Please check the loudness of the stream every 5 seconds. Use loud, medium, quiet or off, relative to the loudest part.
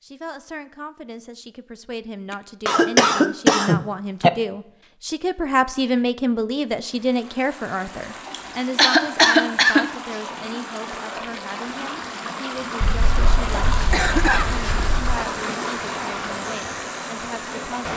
off, medium, loud, loud.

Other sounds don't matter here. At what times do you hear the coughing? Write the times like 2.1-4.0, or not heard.
2.6-4.3, 8.3-9.9, 12.8-15.2.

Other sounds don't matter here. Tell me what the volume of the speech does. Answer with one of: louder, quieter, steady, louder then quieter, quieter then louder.
louder then quieter.